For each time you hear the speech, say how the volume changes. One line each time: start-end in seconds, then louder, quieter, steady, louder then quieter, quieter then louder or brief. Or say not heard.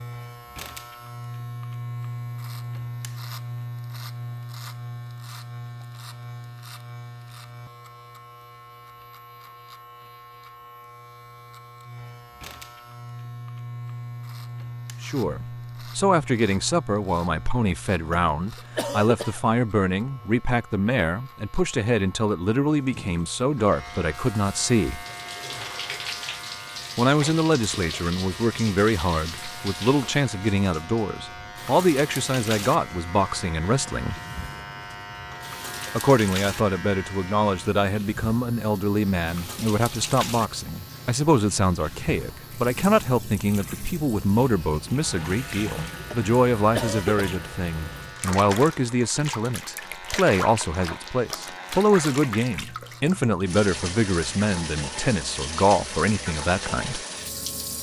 15.0-25.1 steady
26.9-34.2 steady
36.0-57.0 steady.